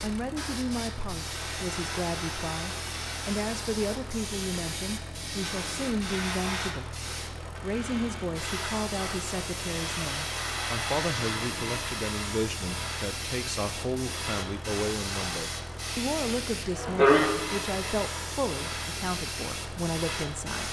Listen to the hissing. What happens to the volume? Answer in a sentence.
The loudness of the hissing goes up.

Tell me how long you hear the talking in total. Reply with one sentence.
You can hear the talking for 20 seconds altogether.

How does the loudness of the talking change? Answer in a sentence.
The volume of the talking stays about the same.